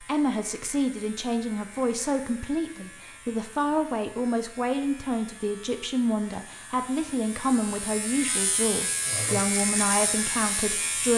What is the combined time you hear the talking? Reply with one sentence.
The talking can be heard for 11 seconds in total.